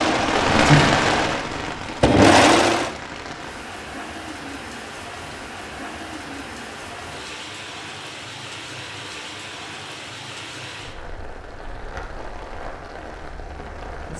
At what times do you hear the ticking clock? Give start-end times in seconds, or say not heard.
not heard.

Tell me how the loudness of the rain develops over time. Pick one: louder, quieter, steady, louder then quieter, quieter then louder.
quieter.